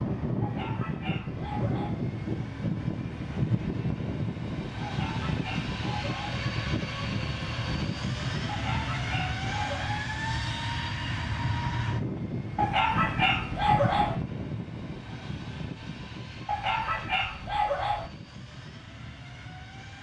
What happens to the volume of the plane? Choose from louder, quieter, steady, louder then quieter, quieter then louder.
quieter.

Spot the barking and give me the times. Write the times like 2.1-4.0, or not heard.
0.4-2.0, 4.8-6.4, 8.4-10.0, 12.6-14.2, 16.4-18.1.